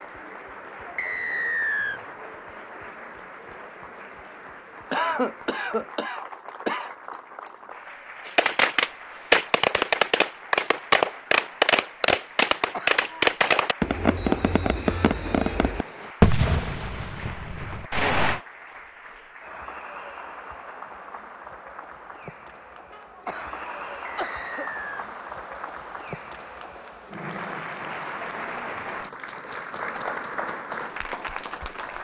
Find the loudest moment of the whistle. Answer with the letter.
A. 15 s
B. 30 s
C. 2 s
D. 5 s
C.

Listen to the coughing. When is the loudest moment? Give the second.
5 s.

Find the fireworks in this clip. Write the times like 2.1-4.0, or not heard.
8.2-18.4.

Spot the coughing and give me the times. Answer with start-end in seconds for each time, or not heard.
4.9-7.0, 12.6-13.3, 22.9-24.8.